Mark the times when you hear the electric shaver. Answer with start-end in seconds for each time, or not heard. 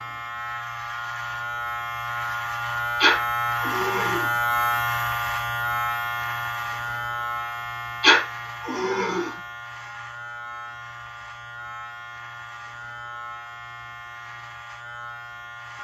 0.0-15.7.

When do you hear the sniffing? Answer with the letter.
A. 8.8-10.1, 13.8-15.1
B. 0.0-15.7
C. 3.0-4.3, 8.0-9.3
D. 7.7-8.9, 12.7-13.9
C.